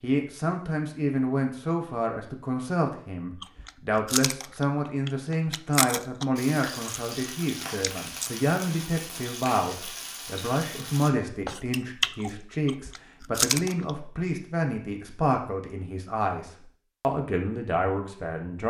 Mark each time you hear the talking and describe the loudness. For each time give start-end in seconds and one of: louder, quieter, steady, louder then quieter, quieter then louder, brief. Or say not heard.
0.0-18.6 steady.